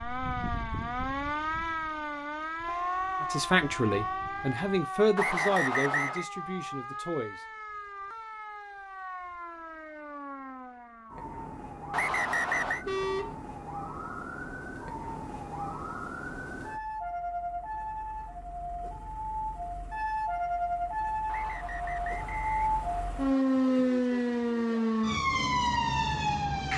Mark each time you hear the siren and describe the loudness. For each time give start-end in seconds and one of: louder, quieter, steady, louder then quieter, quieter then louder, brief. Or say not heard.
0.0-26.7 quieter then louder.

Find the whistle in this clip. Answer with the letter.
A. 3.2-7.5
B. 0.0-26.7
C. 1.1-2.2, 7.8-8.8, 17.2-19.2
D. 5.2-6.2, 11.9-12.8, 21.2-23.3
D.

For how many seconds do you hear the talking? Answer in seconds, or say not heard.
4 s.